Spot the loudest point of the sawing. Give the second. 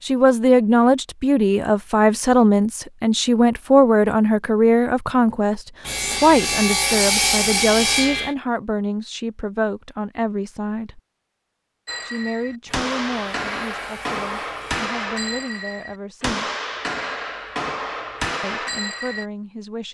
7 s.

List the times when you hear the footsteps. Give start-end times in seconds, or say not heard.
not heard.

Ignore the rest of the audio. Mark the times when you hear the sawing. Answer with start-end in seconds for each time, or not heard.
5.8-8.3, 12.7-15.4.